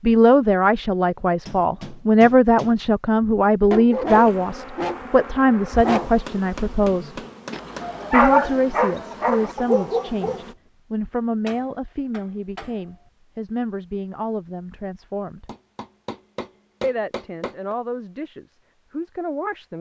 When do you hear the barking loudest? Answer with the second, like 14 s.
8 s.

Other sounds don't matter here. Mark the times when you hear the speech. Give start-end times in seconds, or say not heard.
0.0-7.2, 8.1-15.5, 16.8-19.7.